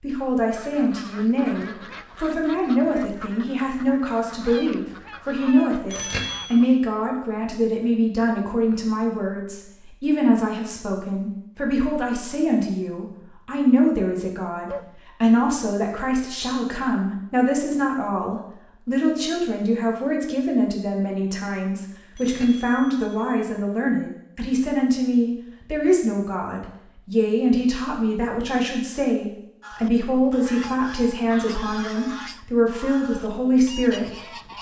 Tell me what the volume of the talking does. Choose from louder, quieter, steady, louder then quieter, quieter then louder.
steady.